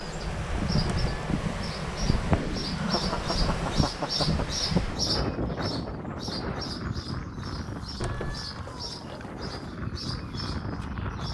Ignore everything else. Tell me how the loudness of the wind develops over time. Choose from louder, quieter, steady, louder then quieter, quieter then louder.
quieter.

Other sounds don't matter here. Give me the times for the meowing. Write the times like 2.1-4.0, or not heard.
0.8-1.3, 8.0-9.3.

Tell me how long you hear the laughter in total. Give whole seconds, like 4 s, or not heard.
2 s.